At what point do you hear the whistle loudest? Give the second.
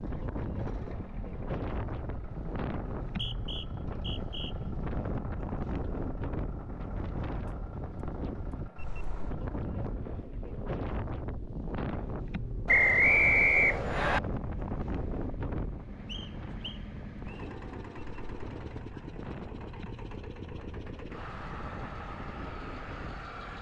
13 s.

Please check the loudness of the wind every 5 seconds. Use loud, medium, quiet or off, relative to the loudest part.
loud, loud, loud, medium, medium.